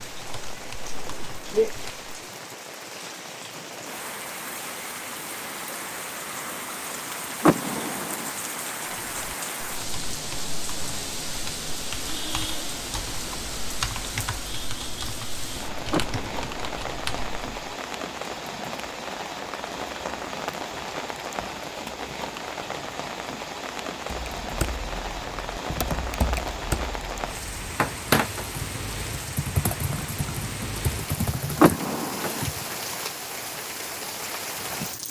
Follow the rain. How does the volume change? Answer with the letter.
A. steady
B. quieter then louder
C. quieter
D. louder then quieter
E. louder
A.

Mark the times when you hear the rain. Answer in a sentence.
The rain can be heard from 0.0 to 35.0 s.